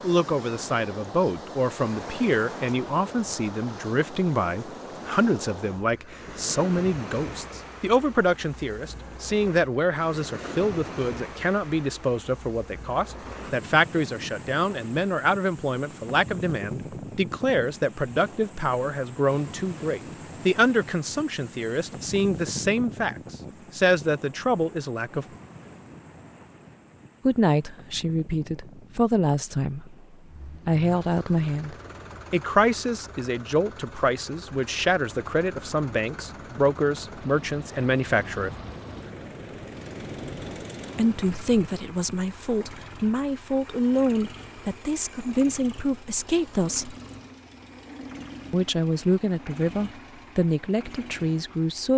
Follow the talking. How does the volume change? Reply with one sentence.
The loudness of the talking stays about the same.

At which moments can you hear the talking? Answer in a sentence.
The talking can be heard from 0.0 to 25.2 s, from 27.2 to 38.5 s, from 41.0 to 47.0 s and from 48.5 to 51.9 s.